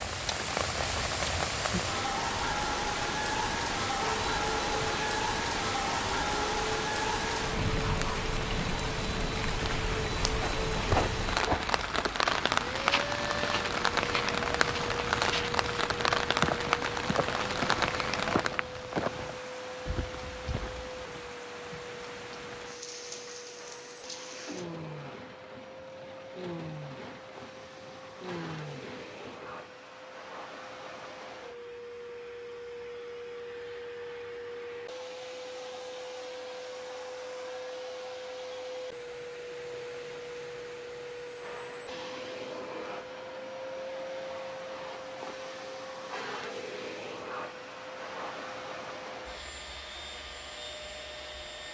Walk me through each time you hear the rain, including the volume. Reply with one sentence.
The rain can be heard from 0.0 to 29.8 s, getting quieter.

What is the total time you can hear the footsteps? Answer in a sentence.
The footsteps can be heard for 11 seconds in total.